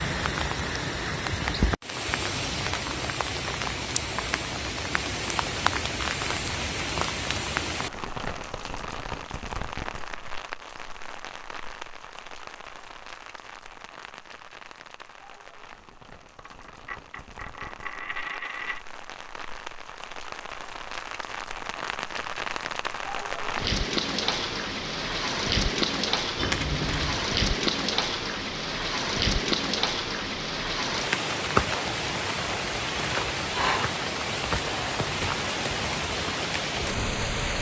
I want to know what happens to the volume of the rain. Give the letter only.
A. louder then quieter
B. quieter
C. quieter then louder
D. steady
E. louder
C.